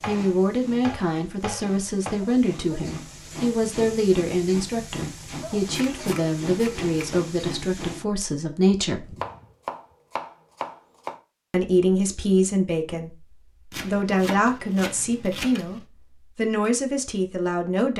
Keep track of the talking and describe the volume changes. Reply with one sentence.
The loudness of the talking stays about the same.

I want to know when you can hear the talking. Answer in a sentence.
You can hear the talking from 0.1 to 9.2 s and from 11.5 to 17.9 s.